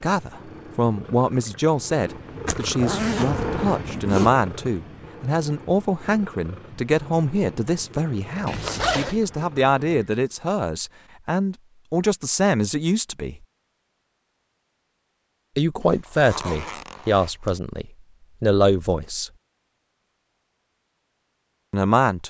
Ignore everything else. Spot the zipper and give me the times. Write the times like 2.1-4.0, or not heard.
2.5-4.3, 8.4-9.2, 15.8-17.6.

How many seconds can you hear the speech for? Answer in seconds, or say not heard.
18 s.